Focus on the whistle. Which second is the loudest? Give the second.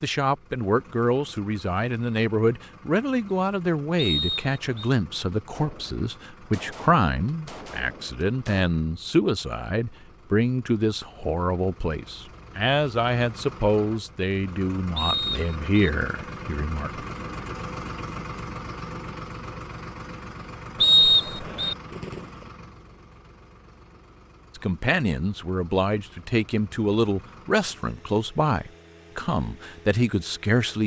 21 s.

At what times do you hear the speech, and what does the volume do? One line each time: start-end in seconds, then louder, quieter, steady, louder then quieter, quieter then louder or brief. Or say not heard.
0.0-17.1 steady
24.6-30.8 steady.